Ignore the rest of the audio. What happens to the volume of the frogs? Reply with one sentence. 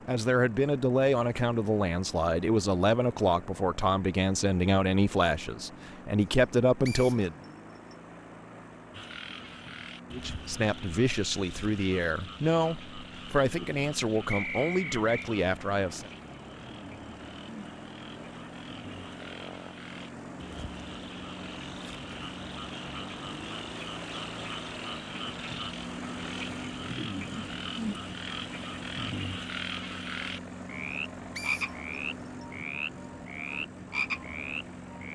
The volume of the frogs goes up.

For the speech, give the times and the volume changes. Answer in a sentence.
You can hear the speech from 0.1 to 7.3 s, at a steady volume; and from 10.1 to 16.1 s, at a steady volume.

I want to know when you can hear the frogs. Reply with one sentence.
The frogs can be heard from 8.9 to 35.0 s.